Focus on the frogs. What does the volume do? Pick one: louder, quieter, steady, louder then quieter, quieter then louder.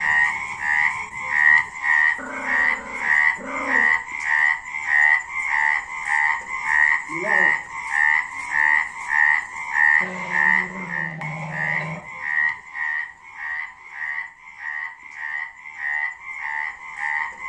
quieter.